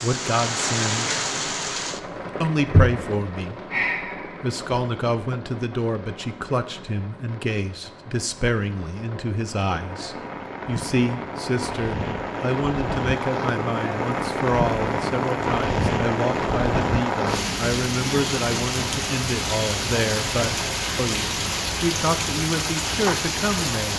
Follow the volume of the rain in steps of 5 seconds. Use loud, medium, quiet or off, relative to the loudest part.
loud, quiet, loud, loud, loud.